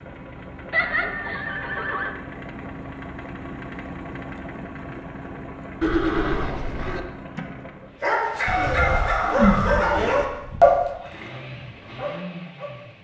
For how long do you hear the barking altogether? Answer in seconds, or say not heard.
5 s.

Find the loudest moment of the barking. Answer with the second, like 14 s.
11 s.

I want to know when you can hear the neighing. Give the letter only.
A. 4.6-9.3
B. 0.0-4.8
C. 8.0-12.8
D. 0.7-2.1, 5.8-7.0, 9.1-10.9
D.